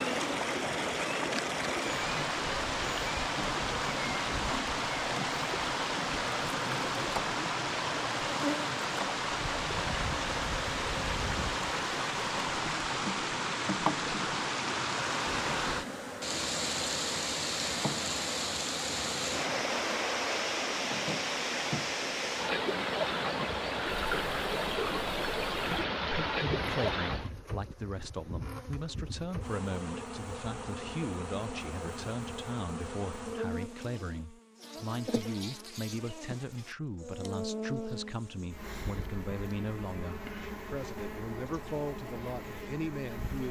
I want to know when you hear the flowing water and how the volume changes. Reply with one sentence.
The flowing water can be heard from 0.0 to 27.3 s, at a steady volume.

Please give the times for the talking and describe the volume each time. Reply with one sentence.
The talking can be heard from 26.1 to 43.4 s, at a steady volume.